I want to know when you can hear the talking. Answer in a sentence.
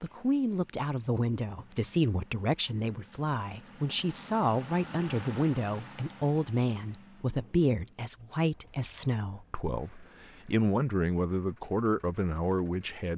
The talking can be heard from 0.0 to 13.1 s.